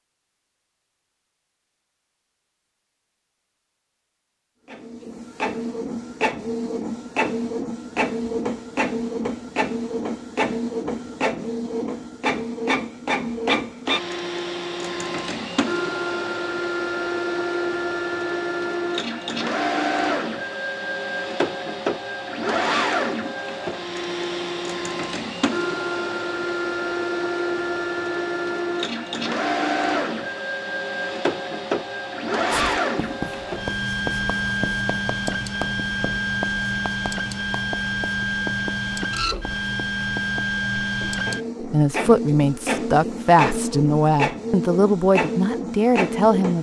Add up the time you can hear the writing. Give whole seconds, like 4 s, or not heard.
9 s.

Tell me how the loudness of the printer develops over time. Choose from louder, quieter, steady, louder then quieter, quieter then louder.
steady.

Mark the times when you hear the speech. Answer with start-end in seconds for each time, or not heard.
41.6-46.5.